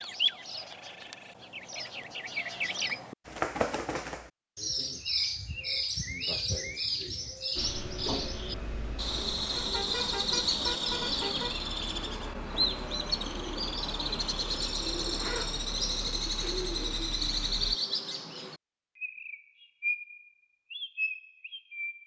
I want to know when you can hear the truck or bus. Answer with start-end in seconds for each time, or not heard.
7.5-17.8.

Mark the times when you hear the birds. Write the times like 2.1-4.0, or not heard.
0.0-22.0.